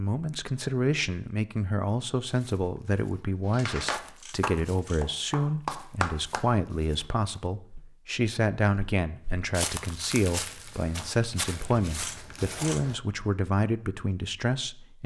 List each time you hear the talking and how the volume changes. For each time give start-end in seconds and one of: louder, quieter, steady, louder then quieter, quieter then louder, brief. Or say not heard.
0.0-15.0 steady.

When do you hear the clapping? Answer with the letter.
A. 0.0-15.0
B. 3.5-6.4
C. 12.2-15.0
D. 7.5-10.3
B.